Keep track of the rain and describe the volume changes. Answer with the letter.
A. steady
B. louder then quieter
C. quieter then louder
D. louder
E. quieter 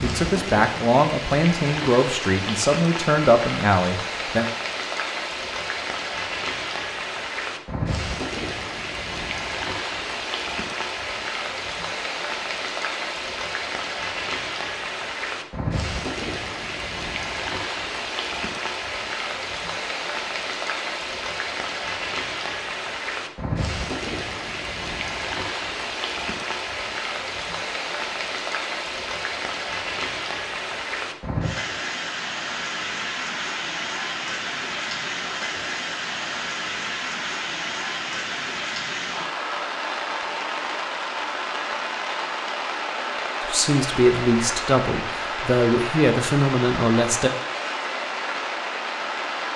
A.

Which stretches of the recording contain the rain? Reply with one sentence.
You can hear the rain from 0.0 to 49.5 s.